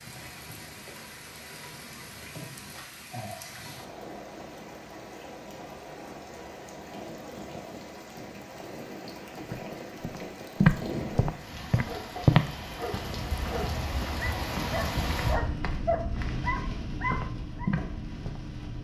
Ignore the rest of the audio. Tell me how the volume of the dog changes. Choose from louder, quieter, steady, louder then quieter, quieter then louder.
louder.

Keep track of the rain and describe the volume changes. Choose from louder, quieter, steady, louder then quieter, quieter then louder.
louder.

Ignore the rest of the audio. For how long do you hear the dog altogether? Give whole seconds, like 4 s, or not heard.
6 s.